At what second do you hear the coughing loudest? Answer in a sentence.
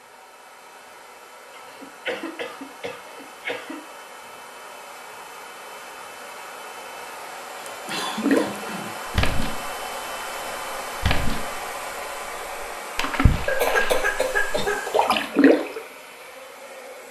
The volume of the coughing peaks at 14 seconds.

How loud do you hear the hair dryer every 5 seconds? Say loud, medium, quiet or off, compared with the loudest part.
medium, loud, loud, medium.